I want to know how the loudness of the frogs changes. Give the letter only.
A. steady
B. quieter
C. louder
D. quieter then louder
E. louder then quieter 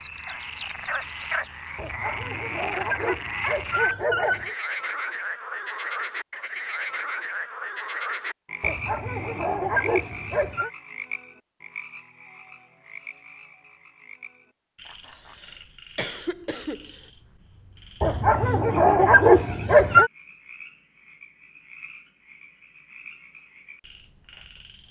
B.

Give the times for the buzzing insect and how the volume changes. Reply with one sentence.
The buzzing insect can't be heard in this clip.